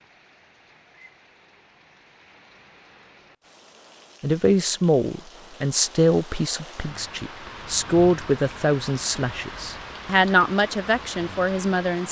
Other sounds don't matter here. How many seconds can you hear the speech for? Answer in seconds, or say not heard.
8 s.